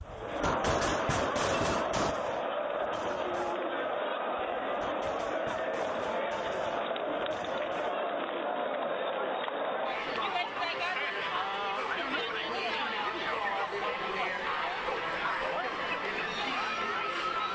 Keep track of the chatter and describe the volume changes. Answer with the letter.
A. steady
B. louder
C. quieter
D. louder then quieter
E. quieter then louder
A.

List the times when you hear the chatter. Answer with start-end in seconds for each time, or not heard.
0.0-17.5.